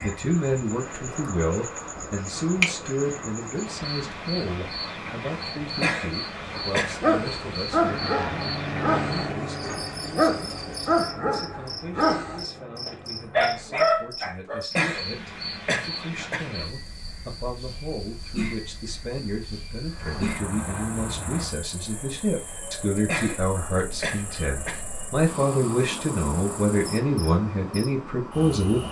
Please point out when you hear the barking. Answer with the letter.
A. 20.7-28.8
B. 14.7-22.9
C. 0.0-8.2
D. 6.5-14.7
D.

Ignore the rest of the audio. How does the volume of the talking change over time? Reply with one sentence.
The volume of the talking goes down, then up.